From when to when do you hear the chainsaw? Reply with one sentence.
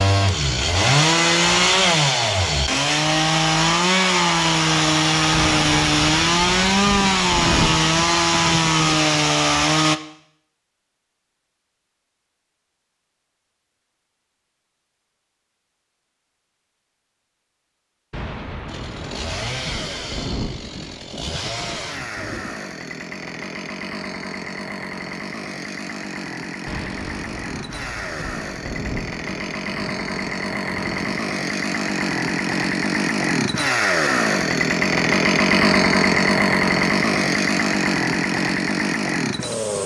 You can hear the chainsaw from 0.0 to 10.0 s and from 18.6 to 39.8 s.